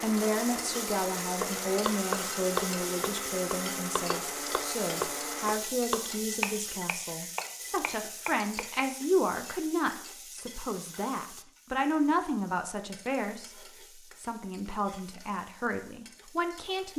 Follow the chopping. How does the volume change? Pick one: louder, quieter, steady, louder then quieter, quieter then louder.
quieter.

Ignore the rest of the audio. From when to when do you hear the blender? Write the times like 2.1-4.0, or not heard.
0.0-5.5.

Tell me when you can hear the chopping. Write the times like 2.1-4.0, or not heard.
1.4-8.9.